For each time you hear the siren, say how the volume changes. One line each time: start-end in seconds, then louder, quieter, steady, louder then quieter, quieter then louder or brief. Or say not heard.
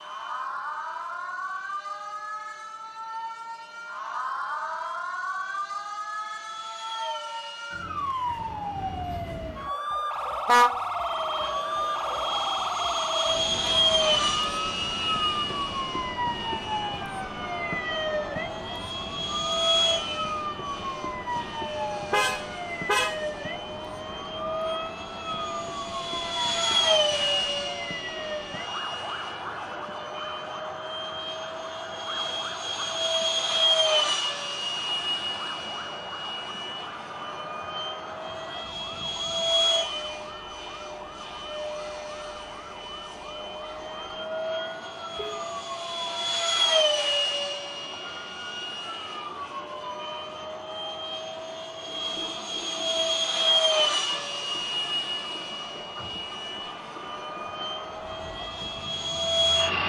0.0-59.8 quieter.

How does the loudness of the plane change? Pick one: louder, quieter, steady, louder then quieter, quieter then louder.
louder.